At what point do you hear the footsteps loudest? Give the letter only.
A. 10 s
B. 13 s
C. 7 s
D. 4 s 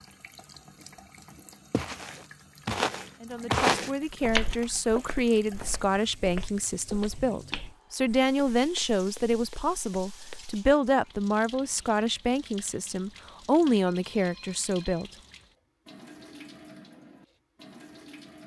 D.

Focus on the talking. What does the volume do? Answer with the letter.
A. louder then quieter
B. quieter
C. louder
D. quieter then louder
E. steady
E.